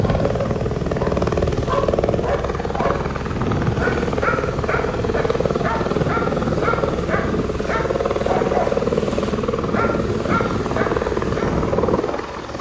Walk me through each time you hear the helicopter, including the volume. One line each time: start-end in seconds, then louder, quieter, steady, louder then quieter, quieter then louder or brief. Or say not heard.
0.0-12.5 steady.